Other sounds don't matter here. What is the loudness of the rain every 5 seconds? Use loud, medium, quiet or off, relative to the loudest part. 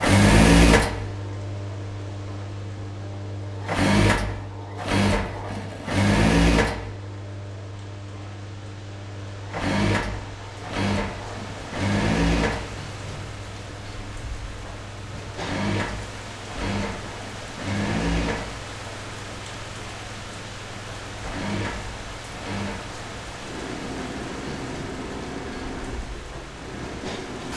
medium, medium, loud, loud, loud, loud.